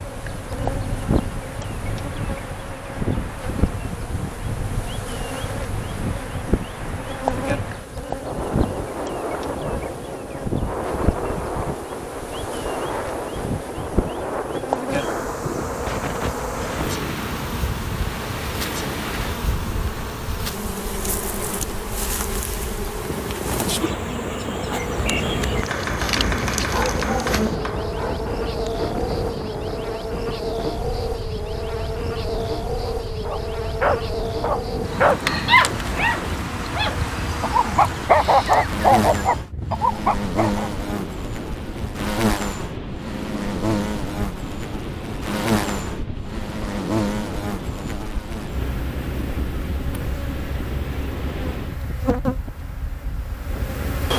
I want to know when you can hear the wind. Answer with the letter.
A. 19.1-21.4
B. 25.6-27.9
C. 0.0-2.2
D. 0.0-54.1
D.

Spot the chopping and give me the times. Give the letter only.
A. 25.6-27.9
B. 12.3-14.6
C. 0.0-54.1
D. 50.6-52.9
A.